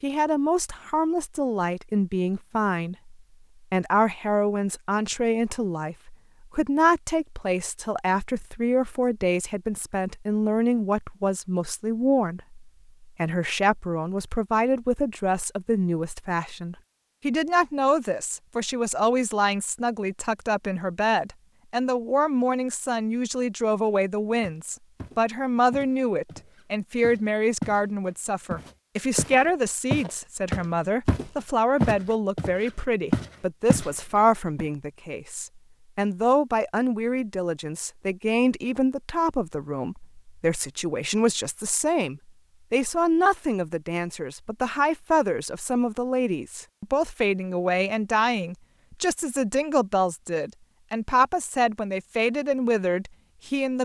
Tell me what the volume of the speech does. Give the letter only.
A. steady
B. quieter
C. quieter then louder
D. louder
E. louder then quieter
A.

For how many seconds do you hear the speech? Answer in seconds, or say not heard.
54 s.